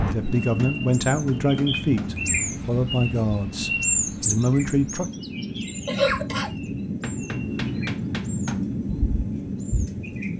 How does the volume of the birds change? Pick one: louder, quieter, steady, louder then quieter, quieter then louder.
louder then quieter.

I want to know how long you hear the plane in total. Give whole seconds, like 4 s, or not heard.
10 s.